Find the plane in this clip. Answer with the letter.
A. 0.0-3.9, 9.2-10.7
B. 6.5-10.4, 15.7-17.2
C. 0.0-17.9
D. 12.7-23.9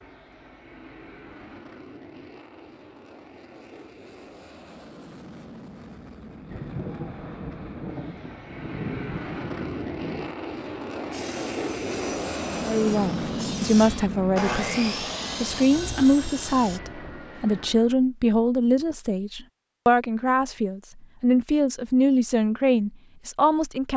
C.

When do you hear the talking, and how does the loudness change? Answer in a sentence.
The talking can be heard from 12.7 to 23.9 s, at a steady volume.